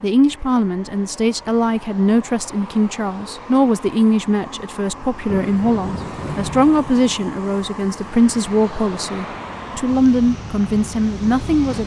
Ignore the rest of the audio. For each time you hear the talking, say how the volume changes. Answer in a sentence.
The talking can be heard from 0.0 to 11.8 s, at a steady volume.